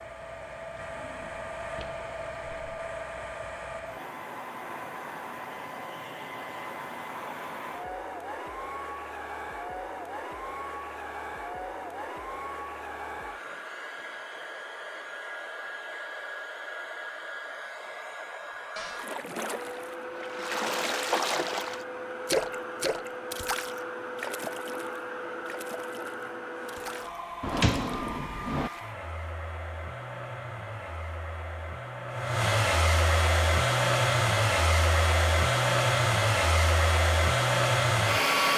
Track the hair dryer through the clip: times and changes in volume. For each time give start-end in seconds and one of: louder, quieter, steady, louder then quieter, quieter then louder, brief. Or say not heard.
0.0-38.5 louder.